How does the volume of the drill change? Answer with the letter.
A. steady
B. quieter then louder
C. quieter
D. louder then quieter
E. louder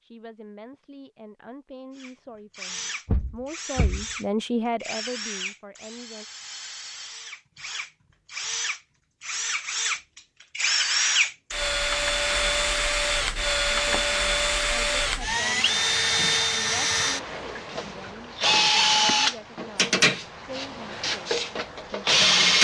E.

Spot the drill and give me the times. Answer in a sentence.
You can hear the drill from 1.9 to 22.5 s.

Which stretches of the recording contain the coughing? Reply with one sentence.
You can't hear the coughing here.